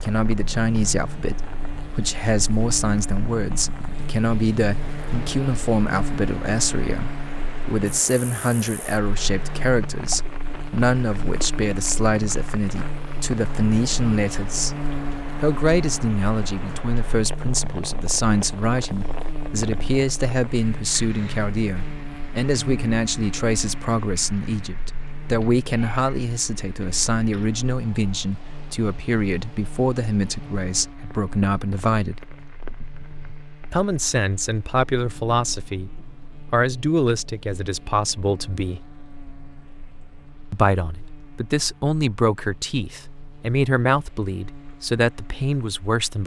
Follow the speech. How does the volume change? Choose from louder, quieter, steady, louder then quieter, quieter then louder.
steady.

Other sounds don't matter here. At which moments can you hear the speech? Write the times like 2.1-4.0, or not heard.
0.0-14.8, 15.4-32.2, 33.7-38.8, 40.5-46.2.